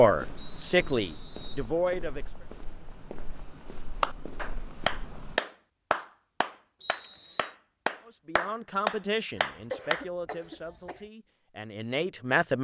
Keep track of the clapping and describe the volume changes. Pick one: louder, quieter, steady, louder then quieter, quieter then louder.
quieter then louder.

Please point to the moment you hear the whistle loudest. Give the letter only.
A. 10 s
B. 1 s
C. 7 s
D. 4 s
C.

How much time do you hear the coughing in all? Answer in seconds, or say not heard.
2 s.